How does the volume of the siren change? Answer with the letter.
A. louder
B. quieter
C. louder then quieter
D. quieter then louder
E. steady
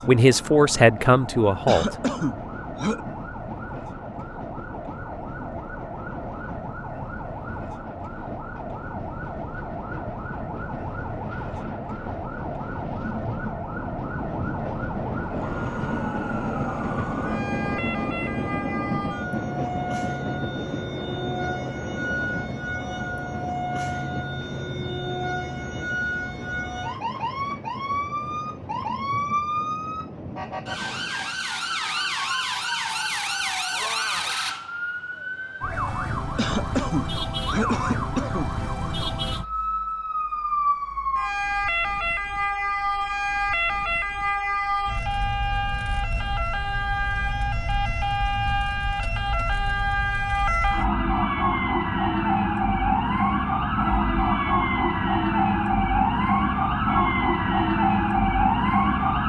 A.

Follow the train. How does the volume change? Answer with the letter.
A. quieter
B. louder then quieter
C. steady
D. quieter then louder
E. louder
B.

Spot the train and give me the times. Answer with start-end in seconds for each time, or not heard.
0.0-31.4.